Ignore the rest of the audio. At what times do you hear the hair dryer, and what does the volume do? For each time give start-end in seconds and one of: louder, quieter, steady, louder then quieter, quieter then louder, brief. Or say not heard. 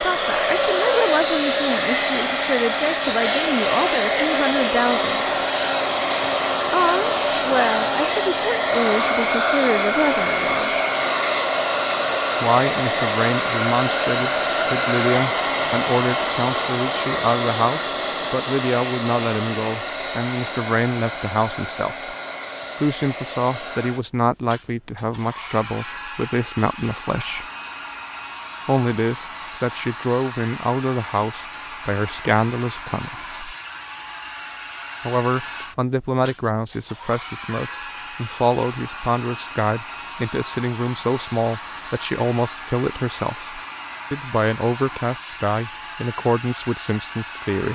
0.0-47.7 quieter.